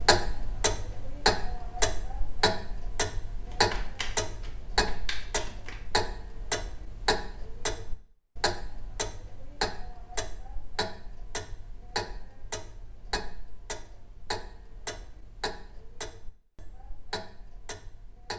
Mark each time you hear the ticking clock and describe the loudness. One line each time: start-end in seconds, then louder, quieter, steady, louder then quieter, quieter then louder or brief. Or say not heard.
0.0-18.3 quieter.